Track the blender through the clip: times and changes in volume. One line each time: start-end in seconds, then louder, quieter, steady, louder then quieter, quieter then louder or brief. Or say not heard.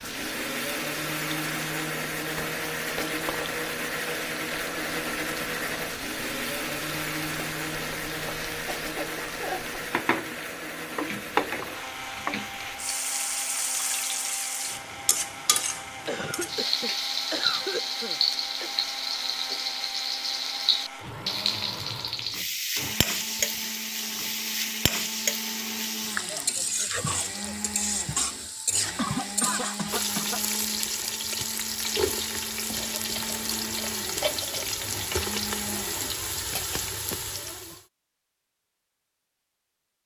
0.0-36.1 quieter.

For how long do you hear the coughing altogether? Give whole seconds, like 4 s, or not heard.
5 s.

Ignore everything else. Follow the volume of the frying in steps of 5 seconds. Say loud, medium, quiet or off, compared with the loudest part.
medium, medium, loud, loud, loud, loud, loud, loud.